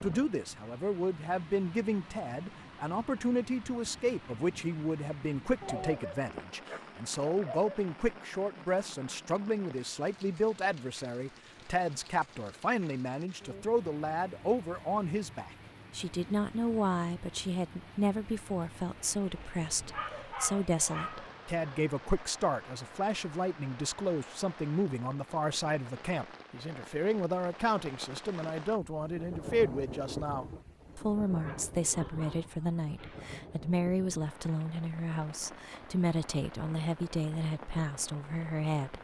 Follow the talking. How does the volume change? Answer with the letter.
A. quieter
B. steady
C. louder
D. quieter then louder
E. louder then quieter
B.